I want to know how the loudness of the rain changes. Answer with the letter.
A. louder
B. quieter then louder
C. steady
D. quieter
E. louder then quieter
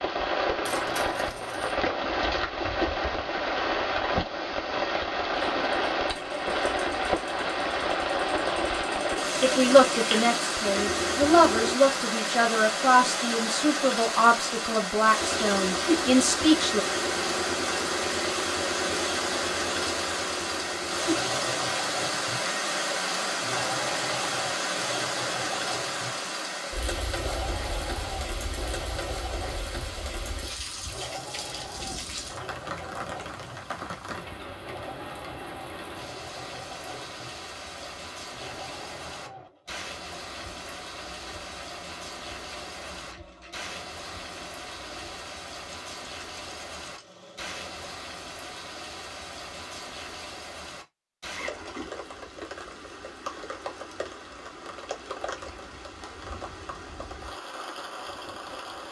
D.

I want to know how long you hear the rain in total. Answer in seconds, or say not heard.
59 s.